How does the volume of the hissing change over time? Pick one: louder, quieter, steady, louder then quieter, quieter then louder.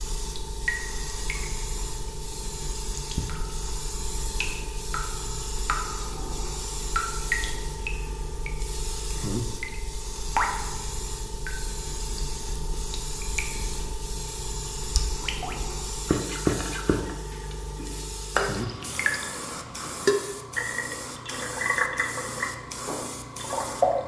steady.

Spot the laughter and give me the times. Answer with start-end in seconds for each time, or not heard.
not heard.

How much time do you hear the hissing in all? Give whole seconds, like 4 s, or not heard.
24 s.